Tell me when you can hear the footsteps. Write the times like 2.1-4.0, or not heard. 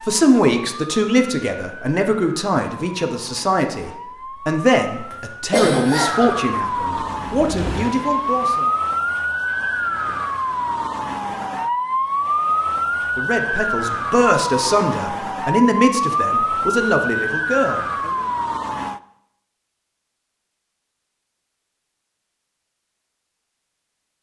not heard.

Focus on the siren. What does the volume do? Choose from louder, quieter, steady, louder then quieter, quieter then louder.
louder.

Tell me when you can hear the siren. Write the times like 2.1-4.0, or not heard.
0.0-19.0.